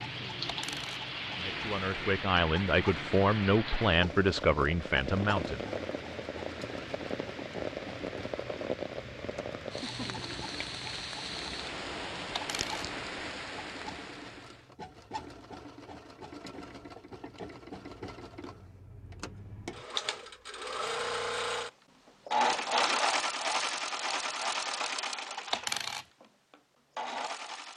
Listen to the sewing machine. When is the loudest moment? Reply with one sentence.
The volume of the sewing machine peaks at 23 seconds.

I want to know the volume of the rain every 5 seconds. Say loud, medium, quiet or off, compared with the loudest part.
loud, loud, loud, off, off, off.